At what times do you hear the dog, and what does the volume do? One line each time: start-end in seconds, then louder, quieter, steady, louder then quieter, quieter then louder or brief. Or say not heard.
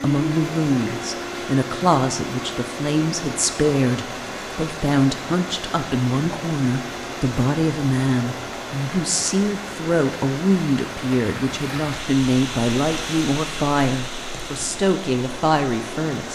not heard.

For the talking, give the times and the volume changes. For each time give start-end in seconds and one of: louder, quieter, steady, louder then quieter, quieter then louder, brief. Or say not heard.
0.0-16.3 steady.